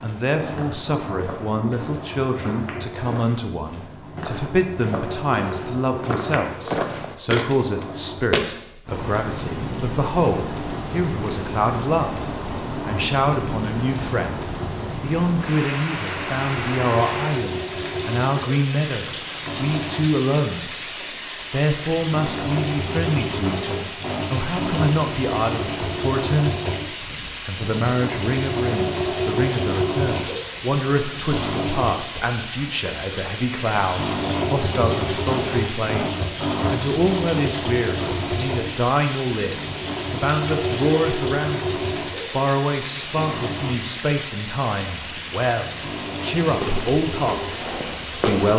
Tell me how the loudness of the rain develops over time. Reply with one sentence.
The volume of the rain stays about the same.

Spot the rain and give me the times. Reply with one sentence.
The rain can be heard from 8.8 to 48.5 s.